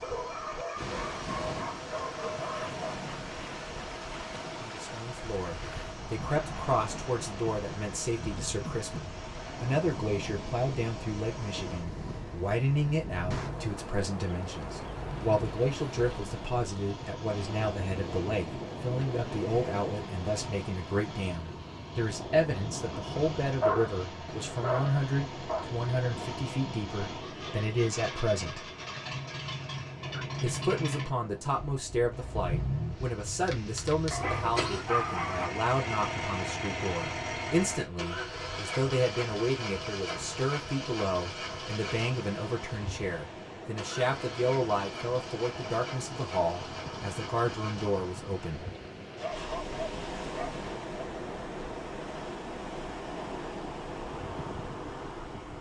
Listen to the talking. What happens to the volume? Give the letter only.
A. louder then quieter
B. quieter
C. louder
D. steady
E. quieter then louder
D.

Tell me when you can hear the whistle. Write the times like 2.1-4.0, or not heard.
not heard.